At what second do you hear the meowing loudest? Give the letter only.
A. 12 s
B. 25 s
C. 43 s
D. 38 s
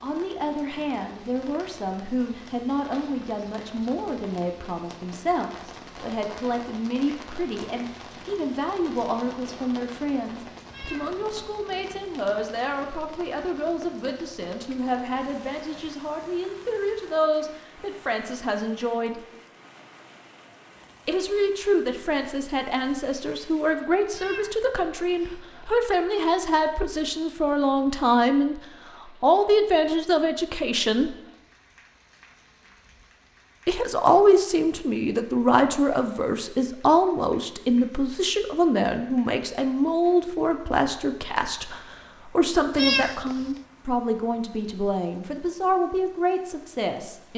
C.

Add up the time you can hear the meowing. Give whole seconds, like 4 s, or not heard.
3 s.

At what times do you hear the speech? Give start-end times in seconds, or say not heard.
0.0-19.2, 21.1-28.6, 29.2-31.1, 33.6-47.3.